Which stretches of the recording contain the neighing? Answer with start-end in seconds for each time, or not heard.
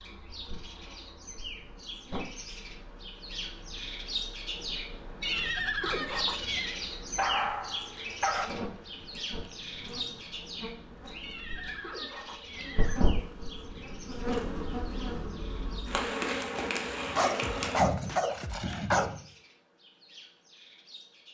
5.2-6.8, 11.2-13.1.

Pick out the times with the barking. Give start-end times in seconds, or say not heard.
7.2-8.5, 17.1-19.1.